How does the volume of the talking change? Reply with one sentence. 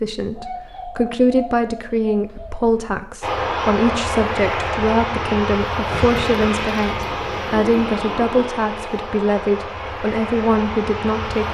The volume of the talking stays about the same.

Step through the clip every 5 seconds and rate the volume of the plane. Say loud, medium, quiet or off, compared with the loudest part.
loud, loud, medium.